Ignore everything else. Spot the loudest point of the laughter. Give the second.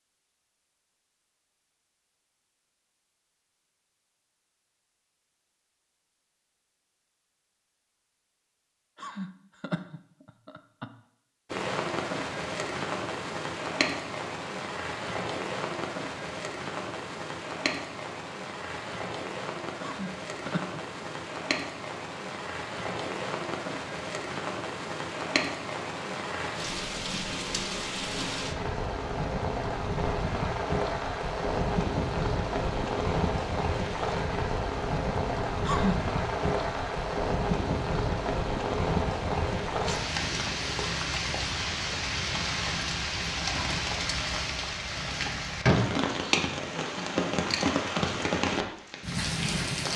36 s.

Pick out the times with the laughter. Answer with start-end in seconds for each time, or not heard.
8.9-10.9, 19.8-20.8, 35.6-36.0.